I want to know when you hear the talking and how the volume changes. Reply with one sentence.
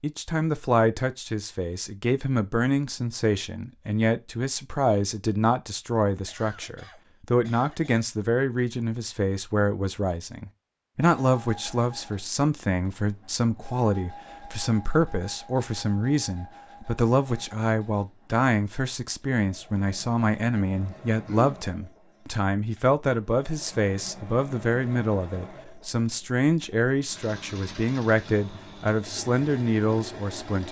The talking can be heard from 0.0 to 30.6 s, at a steady volume.